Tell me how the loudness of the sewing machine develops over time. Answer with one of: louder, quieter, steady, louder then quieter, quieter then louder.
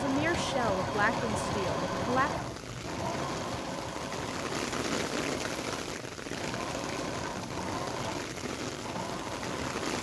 quieter.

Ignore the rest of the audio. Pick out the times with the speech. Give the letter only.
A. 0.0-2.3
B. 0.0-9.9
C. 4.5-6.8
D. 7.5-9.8
A.